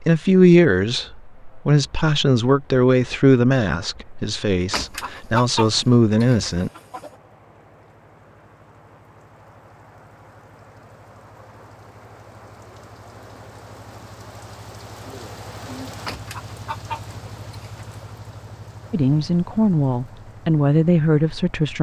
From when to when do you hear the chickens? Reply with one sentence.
The chickens can be heard from 4.7 to 7.2 s and from 16.1 to 18.1 s.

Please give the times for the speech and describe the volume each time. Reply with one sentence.
You can hear the speech from 0.0 to 6.7 s, getting quieter then louder; and briefly from 18.9 to 21.7 s.